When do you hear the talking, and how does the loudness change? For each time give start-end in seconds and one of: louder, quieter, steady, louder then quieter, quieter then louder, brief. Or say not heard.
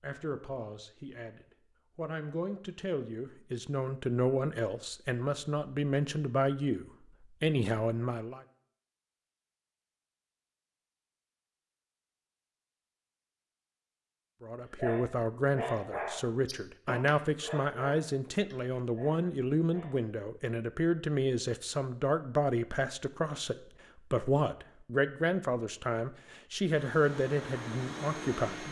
0.0-8.4 louder
14.4-28.6 steady.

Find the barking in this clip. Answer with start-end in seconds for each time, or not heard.
14.8-20.0.